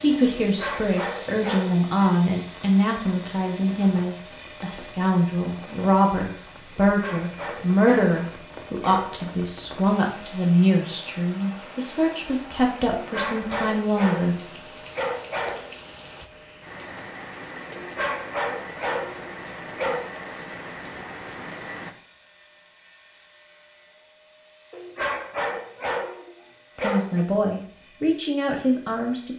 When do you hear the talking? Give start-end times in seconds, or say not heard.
0.0-14.3, 26.8-29.3.